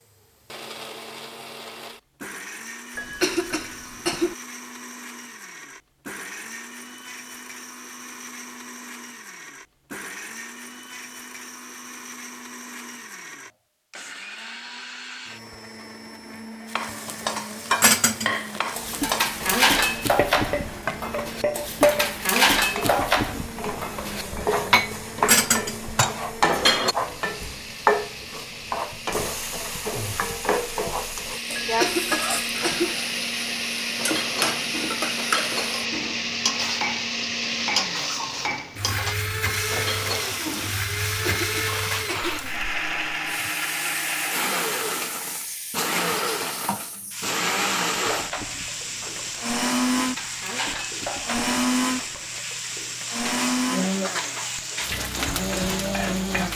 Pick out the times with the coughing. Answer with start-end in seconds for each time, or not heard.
3.0-4.3, 31.6-33.0, 41.0-42.4.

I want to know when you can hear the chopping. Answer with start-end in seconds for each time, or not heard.
not heard.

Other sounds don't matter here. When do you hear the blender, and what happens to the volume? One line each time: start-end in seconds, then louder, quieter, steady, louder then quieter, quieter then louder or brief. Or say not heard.
0.0-56.5 louder.